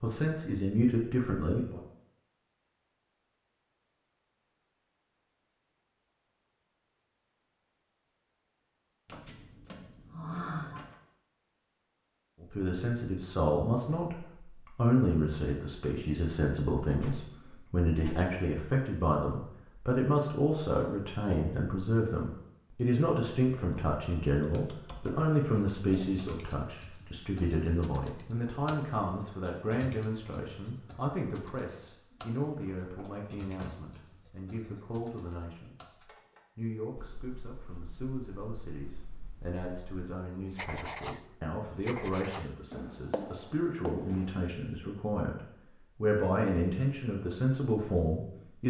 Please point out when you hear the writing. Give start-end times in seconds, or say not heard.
37.0-44.5.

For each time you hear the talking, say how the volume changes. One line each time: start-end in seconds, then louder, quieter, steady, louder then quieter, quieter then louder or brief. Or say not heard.
0.0-1.8 brief
12.4-48.6 quieter then louder.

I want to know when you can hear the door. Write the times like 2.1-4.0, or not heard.
9.1-10.9, 16.9-18.2, 33.0-34.3.